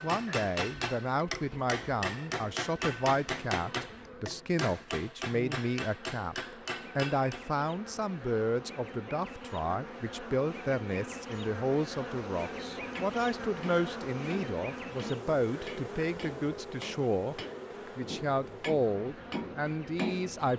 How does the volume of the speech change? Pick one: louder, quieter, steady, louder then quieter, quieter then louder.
steady.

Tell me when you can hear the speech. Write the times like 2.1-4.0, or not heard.
0.0-20.5.